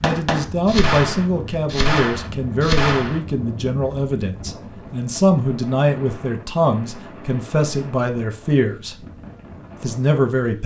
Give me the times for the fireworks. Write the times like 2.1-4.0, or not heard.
0.0-3.2.